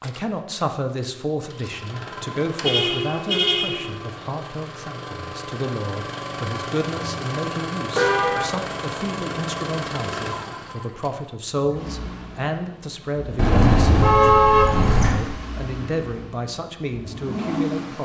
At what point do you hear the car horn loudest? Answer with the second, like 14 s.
14 s.